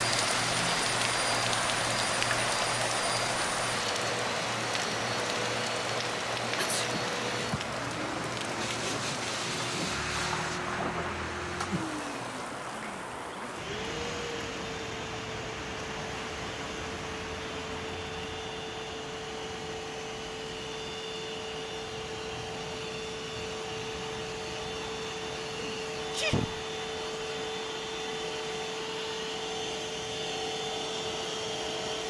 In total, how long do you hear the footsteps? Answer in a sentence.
You can't hear the footsteps here.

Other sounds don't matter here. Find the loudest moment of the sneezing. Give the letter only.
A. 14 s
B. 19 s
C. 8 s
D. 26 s
D.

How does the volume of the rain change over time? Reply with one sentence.
The loudness of the rain goes down.